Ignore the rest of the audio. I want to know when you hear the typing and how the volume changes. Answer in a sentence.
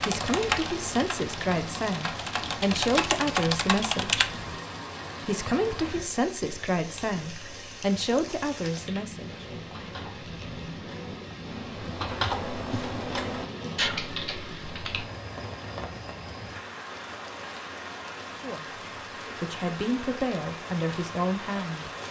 You can hear the typing from 0.0 to 4.5 s, getting quieter then louder; and from 8.7 to 15.1 s, getting louder.